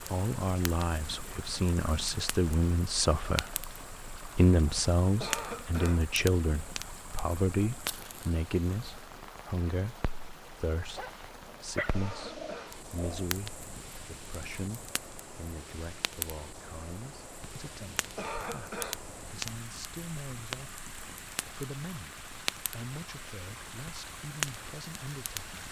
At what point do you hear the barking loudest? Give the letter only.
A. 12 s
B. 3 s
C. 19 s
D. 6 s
A.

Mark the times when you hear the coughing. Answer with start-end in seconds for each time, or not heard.
5.2-6.0, 11.9-12.8, 18.1-19.0.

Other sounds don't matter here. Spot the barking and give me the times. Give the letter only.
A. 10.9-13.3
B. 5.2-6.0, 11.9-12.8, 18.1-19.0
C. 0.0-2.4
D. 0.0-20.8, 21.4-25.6
A.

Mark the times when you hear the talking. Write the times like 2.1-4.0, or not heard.
0.0-20.8, 21.4-25.6.